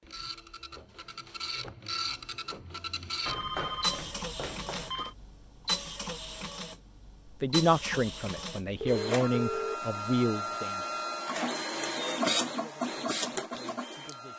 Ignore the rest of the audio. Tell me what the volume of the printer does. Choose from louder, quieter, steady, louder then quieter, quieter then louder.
louder.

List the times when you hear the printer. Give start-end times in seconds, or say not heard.
0.0-14.3.